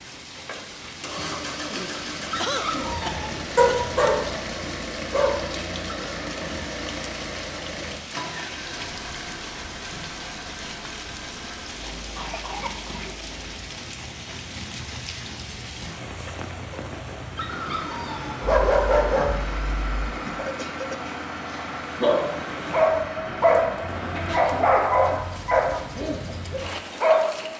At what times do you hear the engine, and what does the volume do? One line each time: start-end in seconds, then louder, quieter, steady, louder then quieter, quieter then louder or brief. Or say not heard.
0.0-24.9 quieter then louder.